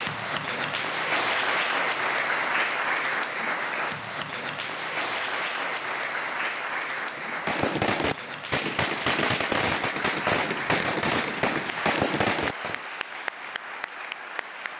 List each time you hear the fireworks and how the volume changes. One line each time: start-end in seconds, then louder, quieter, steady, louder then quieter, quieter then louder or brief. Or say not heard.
7.1-12.8 steady.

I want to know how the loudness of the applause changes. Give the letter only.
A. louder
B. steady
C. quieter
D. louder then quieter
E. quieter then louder
C.